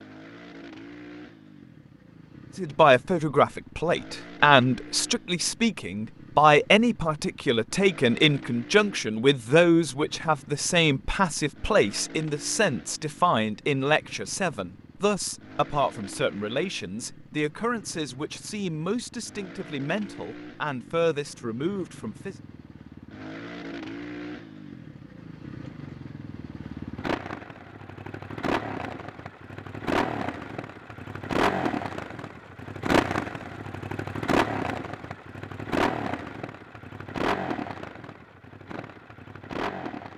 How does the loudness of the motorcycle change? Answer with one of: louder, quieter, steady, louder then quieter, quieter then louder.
louder.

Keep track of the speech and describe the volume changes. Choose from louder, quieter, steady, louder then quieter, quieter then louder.
quieter.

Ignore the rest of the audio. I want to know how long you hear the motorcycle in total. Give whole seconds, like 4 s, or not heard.
40 s.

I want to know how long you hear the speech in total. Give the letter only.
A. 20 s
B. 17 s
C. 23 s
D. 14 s
A.